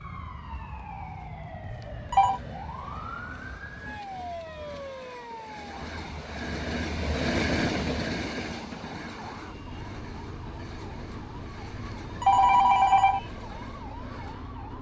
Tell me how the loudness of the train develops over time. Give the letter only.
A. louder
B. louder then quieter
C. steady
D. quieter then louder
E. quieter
B.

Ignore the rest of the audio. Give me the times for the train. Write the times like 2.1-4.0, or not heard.
0.0-14.7.